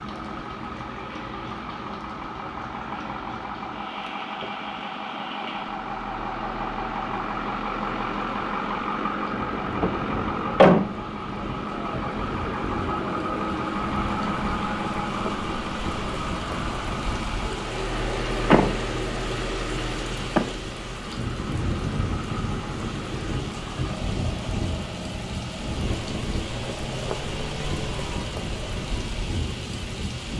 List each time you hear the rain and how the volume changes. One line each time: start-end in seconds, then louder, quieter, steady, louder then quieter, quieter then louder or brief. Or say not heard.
0.0-30.3 louder.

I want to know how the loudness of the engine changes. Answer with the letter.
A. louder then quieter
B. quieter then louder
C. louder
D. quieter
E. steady
A.